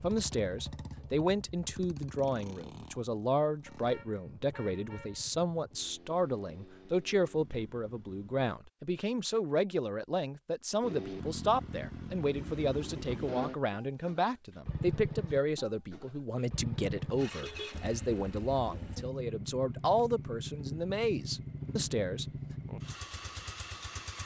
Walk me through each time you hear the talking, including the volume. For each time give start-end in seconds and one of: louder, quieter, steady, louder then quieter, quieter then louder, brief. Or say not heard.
0.0-22.2 steady.